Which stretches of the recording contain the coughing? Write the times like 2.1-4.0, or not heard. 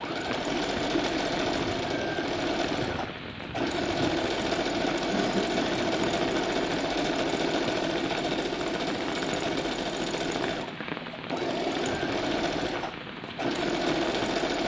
5.1-5.8.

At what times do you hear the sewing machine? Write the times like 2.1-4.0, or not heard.
0.0-14.6.